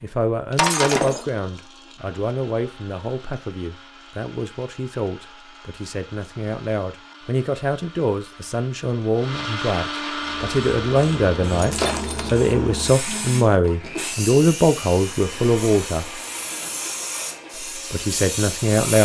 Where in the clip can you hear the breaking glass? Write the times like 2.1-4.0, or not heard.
0.6-1.2, 11.6-12.3.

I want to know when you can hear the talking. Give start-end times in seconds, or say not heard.
0.0-16.1, 17.9-18.9.